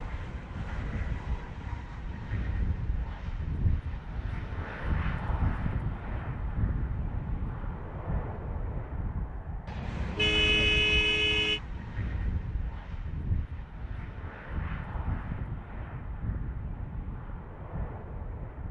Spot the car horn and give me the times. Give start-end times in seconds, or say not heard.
9.7-11.6.